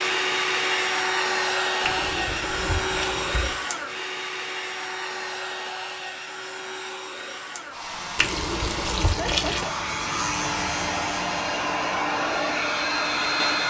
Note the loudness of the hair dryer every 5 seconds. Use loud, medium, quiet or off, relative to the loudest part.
loud, medium, loud.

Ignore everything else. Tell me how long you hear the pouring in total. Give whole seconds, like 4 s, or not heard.
3 s.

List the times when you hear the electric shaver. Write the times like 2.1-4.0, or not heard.
7.8-13.6.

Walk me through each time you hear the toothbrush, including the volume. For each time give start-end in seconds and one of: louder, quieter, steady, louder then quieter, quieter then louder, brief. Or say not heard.
not heard.